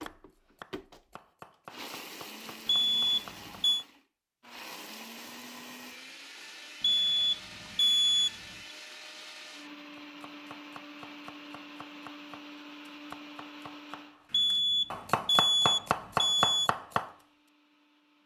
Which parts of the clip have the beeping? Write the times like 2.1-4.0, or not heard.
2.6-3.9, 6.8-8.3, 14.3-16.7.